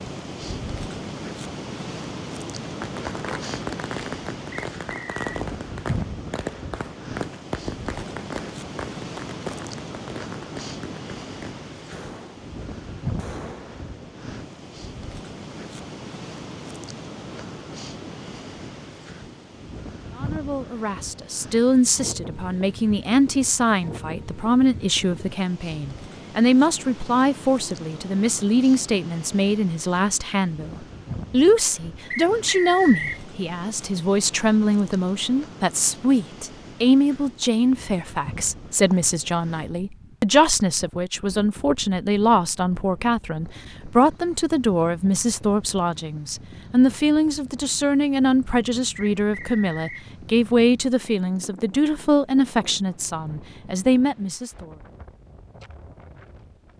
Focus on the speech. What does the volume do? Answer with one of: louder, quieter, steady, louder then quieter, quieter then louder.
steady.